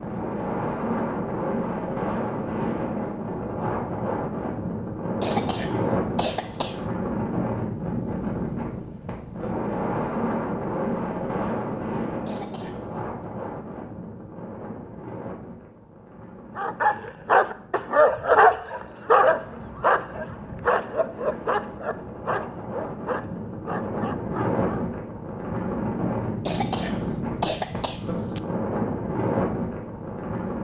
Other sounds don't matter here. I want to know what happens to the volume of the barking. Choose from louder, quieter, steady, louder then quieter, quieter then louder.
quieter.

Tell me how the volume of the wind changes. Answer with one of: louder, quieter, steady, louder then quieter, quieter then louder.
quieter then louder.